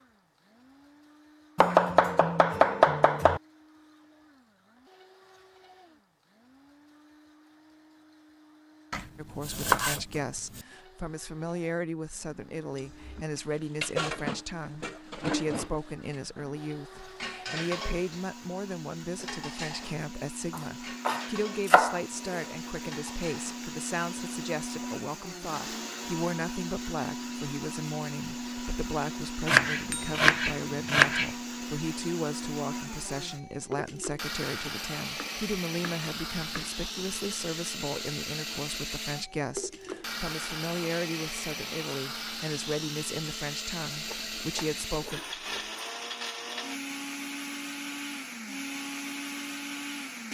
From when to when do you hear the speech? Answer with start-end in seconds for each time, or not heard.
9.2-45.2.